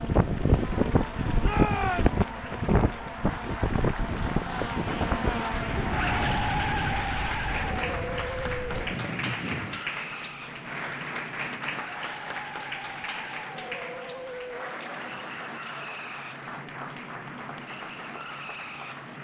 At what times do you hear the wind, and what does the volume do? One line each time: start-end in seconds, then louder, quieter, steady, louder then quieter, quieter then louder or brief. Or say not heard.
0.0-9.8 quieter.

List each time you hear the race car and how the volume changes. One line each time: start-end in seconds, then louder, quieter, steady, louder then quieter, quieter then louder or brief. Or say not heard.
0.0-19.1 louder then quieter.